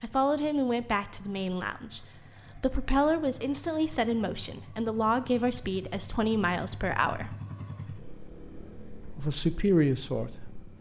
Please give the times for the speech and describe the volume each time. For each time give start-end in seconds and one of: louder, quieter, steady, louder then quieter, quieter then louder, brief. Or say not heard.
0.0-7.3 steady
9.1-10.3 brief.